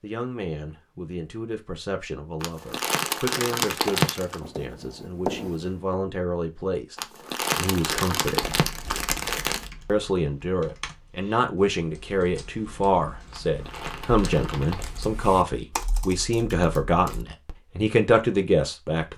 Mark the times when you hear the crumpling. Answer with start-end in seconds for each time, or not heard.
2.4-4.4, 7.0-9.7, 13.3-14.9.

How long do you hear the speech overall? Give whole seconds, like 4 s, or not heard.
17 s.